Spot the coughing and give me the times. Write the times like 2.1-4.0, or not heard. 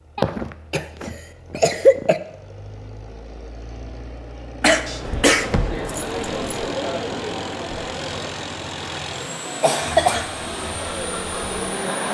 0.1-2.2, 4.6-5.5, 9.6-10.3.